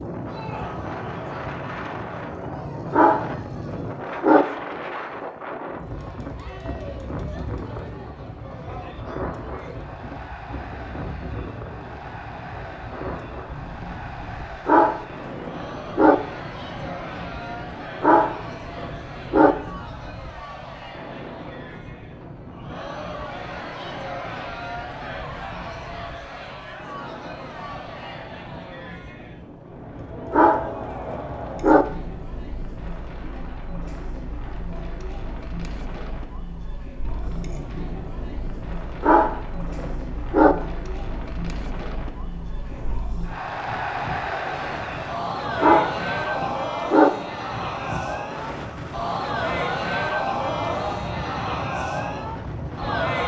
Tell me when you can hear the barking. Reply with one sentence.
You can hear the barking from 2.9 to 4.5 s, from 14.7 to 16.1 s, from 18.0 to 19.6 s, from 30.3 to 31.9 s, from 39.0 to 40.5 s and from 45.6 to 47.1 s.